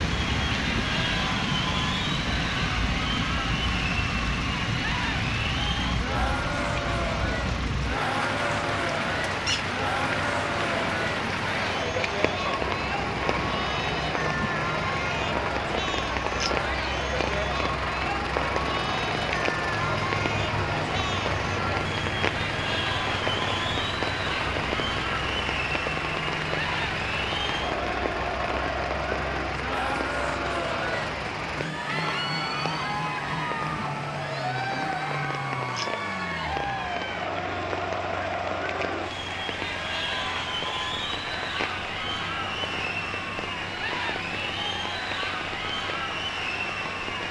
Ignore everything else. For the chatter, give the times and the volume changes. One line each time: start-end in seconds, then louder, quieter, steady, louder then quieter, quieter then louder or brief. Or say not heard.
0.0-47.2 steady.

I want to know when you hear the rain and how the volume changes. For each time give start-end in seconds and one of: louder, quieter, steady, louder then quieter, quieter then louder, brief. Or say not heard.
0.0-47.2 quieter.